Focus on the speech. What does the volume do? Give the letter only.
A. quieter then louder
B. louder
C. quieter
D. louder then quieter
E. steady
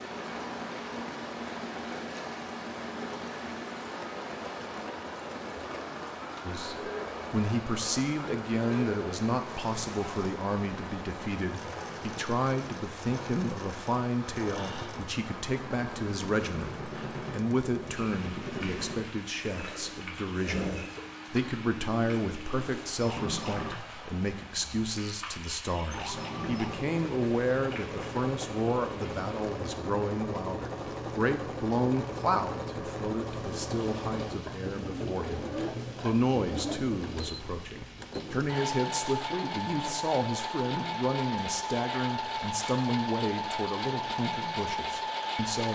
E.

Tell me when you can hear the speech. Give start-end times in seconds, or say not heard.
6.5-45.7.